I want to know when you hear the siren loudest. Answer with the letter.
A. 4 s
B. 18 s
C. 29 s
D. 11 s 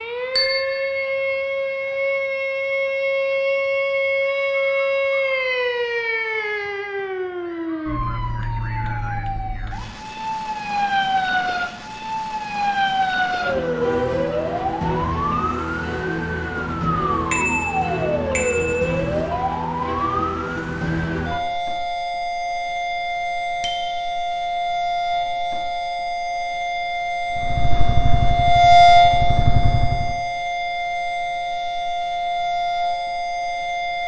C.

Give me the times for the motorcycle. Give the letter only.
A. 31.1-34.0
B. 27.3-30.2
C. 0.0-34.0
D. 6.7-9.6
B.